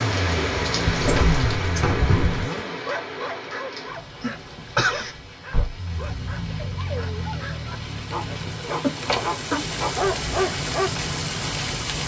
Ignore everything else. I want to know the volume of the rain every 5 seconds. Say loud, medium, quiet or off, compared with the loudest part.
loud, medium, loud.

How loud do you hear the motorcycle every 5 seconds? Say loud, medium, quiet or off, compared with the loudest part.
loud, medium, off.